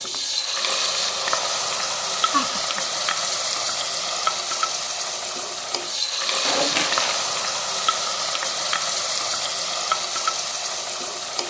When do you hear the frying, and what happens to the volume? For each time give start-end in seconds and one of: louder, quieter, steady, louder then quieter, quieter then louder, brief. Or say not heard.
0.0-11.4 steady.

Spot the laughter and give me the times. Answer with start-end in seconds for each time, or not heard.
2.3-2.8.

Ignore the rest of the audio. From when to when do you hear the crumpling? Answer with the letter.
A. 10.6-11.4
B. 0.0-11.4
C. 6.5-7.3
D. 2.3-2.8
C.